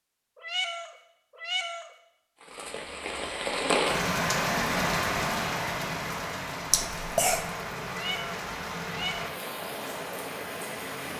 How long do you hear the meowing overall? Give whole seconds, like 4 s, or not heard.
3 s.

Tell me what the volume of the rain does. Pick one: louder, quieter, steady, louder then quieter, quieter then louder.
quieter.